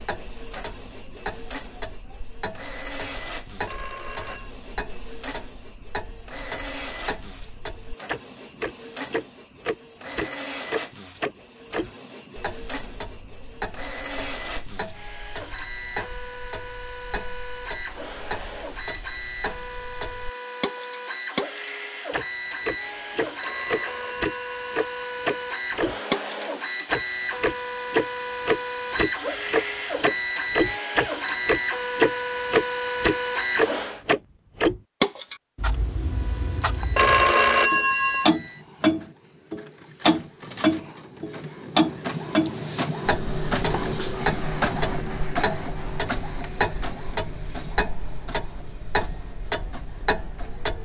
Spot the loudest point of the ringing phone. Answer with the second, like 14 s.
37 s.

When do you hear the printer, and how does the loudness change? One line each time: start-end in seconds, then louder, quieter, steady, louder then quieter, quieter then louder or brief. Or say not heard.
0.0-34.0 louder
36.0-50.7 louder then quieter.